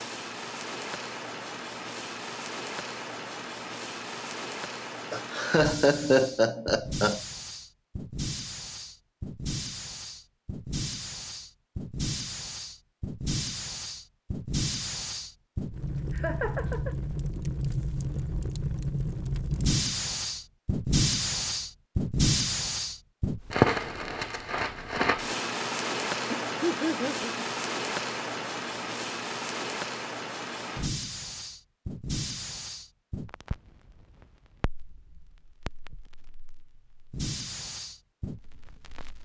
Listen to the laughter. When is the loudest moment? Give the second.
6 s.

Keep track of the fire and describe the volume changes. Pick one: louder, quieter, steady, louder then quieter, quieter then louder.
louder then quieter.